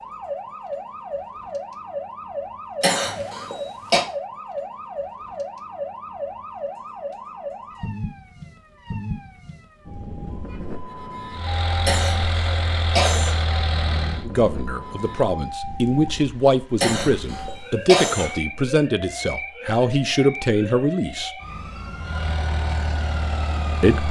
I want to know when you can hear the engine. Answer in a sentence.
The engine can be heard from 11.3 to 14.2 s and from 21.9 to 24.0 s.